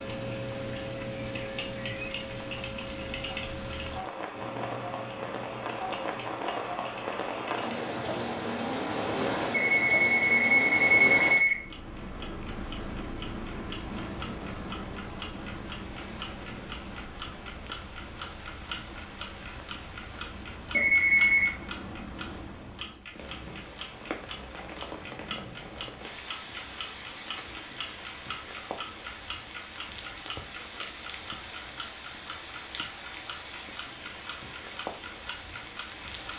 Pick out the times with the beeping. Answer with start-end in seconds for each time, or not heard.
9.7-11.6, 20.7-21.5.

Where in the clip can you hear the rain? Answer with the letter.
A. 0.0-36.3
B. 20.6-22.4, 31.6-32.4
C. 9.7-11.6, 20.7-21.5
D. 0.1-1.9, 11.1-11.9
A.